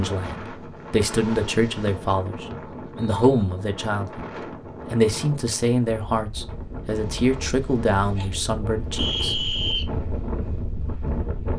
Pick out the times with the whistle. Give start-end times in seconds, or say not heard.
2.5-3.5, 8.9-9.9.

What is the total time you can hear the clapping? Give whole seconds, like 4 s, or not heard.
not heard.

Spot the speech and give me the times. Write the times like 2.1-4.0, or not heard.
0.0-4.2, 4.8-9.4.